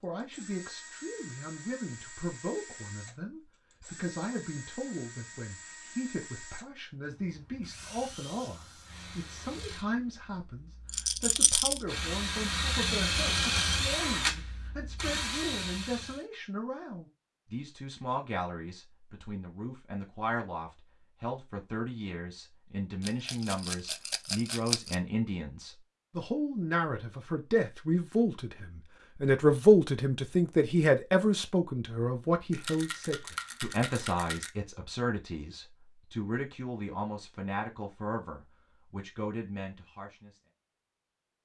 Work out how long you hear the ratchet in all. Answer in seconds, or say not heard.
not heard.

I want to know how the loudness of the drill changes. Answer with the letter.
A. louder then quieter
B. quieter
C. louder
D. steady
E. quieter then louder
C.